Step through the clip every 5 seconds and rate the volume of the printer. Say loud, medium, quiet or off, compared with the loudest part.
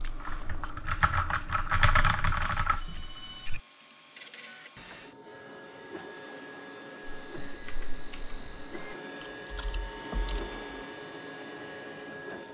medium, medium, loud.